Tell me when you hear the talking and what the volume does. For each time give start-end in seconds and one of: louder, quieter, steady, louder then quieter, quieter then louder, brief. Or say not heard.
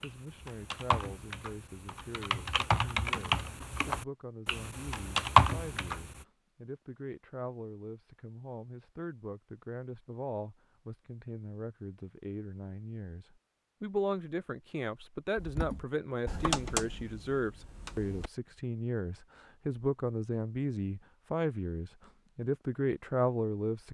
0.0-23.8 louder.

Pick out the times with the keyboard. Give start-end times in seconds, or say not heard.
0.0-6.2, 15.3-18.3.